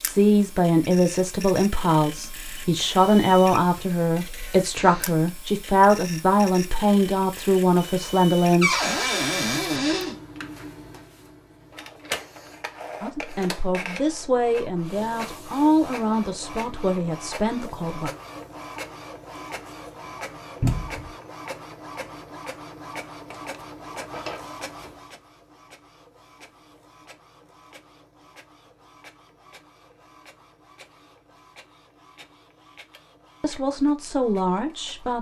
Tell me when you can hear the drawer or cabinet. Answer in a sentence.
You can hear the drawer or cabinet from 8.6 to 10.2 s, from 20.6 to 21.1 s and from 23.9 to 24.4 s.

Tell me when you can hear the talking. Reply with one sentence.
The talking can be heard from 0.1 to 8.8 s, from 13.0 to 18.1 s and from 33.4 to 35.1 s.